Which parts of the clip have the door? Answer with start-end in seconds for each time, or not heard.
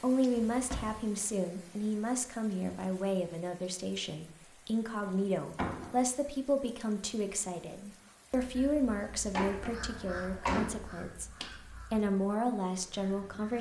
0.3-1.0, 5.0-6.0, 9.3-10.8.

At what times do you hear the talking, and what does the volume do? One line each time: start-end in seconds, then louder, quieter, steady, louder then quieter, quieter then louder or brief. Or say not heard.
0.0-13.5 steady.